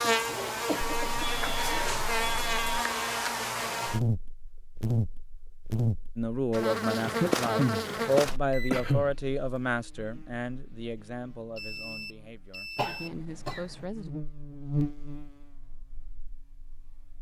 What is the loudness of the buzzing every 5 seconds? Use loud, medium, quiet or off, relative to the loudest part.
loud, loud, medium, quiet.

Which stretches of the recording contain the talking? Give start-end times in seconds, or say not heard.
6.2-14.1.